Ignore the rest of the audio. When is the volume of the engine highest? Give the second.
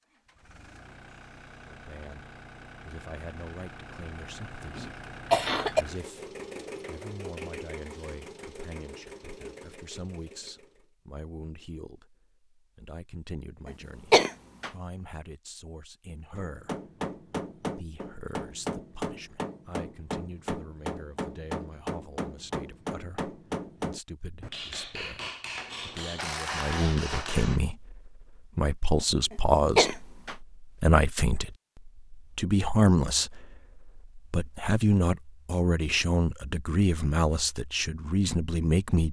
7 s.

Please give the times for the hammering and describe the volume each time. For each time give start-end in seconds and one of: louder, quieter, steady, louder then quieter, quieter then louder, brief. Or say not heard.
16.4-27.6 steady.